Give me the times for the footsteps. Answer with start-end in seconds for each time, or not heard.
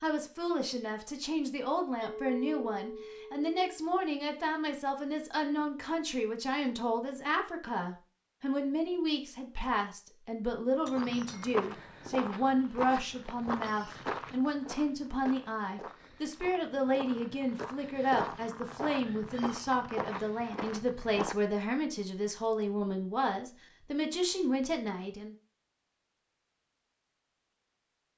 10.9-21.4.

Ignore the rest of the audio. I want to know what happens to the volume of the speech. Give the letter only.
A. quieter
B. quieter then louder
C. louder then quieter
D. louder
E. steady
E.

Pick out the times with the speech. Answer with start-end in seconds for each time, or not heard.
0.0-25.4.